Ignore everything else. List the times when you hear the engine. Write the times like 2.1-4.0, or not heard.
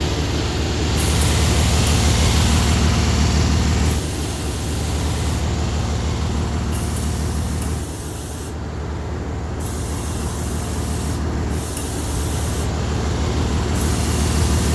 0.0-14.6.